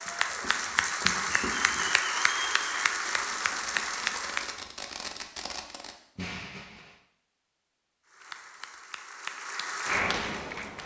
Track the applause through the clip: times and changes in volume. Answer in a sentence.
You can hear the applause from 0.0 to 4.6 s, at a steady volume; and briefly from 8.1 to 10.8 s.